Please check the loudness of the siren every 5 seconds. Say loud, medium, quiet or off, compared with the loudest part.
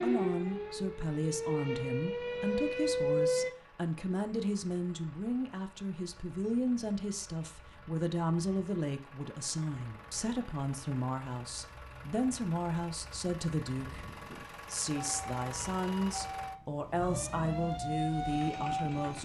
loud, off, off, medium.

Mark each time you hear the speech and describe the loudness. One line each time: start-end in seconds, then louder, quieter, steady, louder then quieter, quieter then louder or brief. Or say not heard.
0.0-19.2 steady.